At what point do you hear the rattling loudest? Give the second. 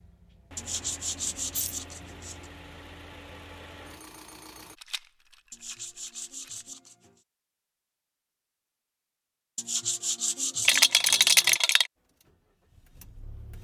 11 s.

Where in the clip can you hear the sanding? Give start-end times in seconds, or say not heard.
0.6-2.5, 5.5-7.2, 9.6-11.6.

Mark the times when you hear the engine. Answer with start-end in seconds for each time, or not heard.
0.0-4.8, 11.9-13.5.